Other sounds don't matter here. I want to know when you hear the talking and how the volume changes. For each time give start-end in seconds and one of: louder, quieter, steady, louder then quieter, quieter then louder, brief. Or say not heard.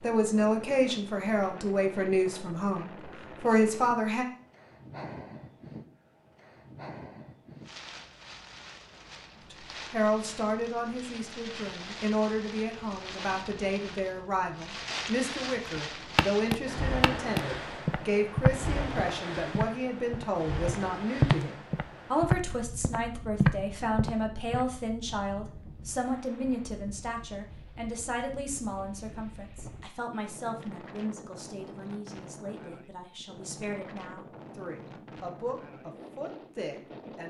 0.0-4.2 quieter then louder
9.5-37.2 quieter.